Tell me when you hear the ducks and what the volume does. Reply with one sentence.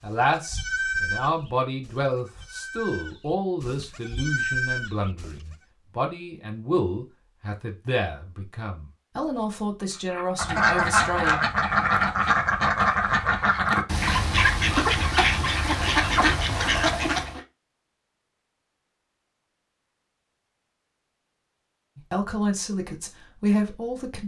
You can hear the ducks from 10.1 to 17.4 s, at a steady volume.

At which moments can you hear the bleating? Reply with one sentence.
You can hear the bleating from 0.1 to 5.5 s.